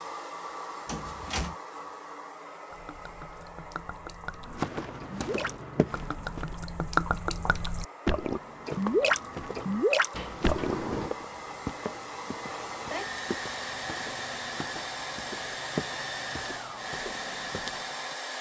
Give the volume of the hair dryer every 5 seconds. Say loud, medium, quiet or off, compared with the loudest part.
medium, medium, loud, loud.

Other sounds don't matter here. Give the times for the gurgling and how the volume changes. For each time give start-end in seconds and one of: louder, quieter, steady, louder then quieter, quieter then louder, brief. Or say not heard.
2.7-11.2 louder.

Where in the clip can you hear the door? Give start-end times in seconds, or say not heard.
0.8-1.6, 10.1-11.2.